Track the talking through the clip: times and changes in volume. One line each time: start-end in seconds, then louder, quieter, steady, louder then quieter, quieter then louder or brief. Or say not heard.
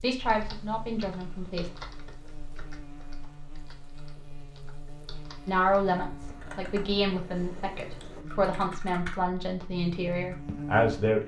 0.0-1.7 brief
5.5-11.2 steady.